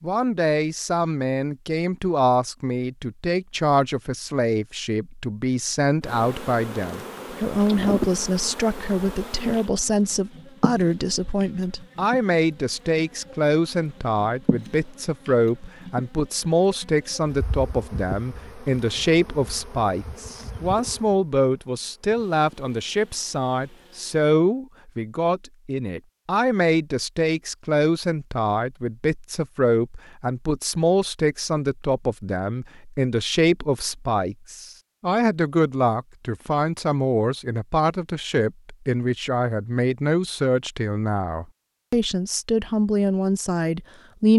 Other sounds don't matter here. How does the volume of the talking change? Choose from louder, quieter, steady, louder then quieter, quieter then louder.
steady.